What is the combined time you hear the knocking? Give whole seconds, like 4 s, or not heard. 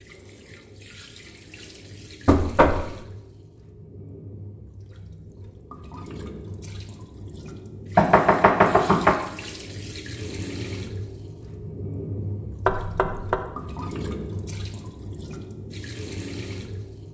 3 s.